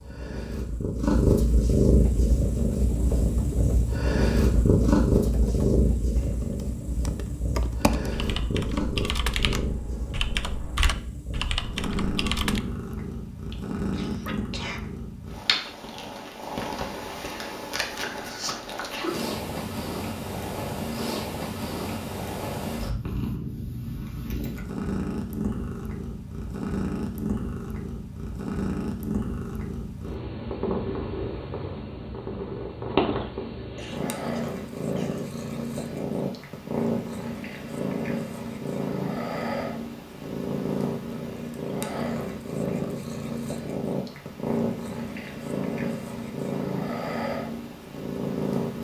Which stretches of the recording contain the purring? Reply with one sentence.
The purring can be heard from 0.0 to 48.7 s.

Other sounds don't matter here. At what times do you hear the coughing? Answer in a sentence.
You can hear the coughing from 13.5 to 14.8 s and from 33.8 to 35.3 s.